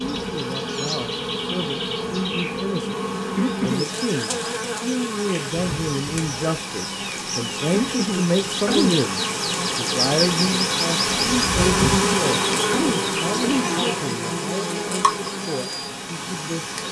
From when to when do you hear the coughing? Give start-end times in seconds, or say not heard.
3.4-3.9, 7.7-9.0, 11.8-13.7.